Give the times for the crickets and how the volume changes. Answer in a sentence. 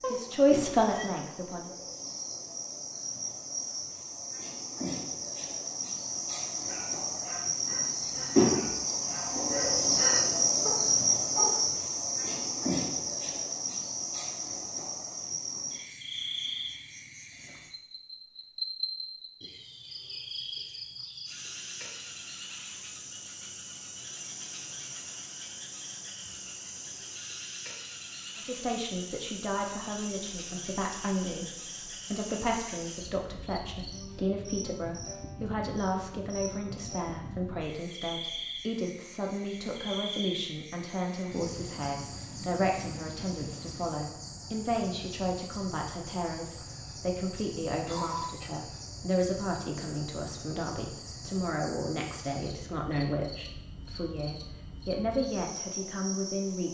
You can hear the crickets from 0.0 to 56.6 s, getting quieter.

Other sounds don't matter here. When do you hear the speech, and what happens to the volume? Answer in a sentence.
The speech can be heard briefly from 0.1 to 1.8 s; and from 28.4 to 56.6 s, at a steady volume.